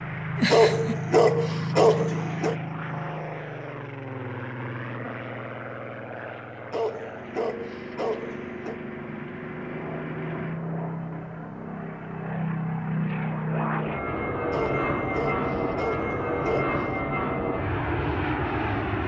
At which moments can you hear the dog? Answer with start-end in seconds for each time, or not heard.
0.5-2.5, 6.7-8.8, 14.5-16.9.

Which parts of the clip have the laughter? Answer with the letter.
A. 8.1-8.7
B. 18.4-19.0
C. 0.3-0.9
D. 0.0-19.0
C.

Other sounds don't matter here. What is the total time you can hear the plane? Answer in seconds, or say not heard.
19 s.